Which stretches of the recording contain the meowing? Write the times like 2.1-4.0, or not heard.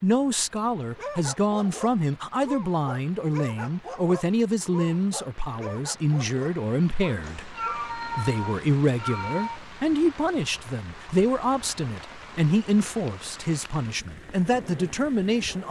7.2-9.6.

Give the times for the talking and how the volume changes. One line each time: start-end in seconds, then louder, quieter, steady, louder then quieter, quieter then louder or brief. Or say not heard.
0.0-15.6 steady.